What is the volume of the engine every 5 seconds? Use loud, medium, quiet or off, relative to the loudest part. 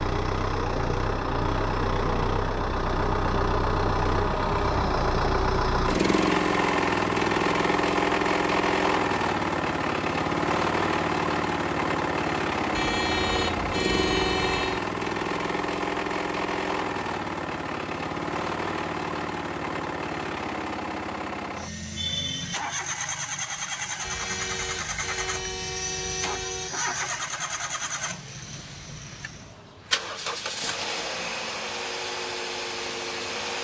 loud, loud, loud, medium, medium, medium, medium.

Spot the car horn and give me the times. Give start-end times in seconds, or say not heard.
12.7-14.8, 24.0-26.7.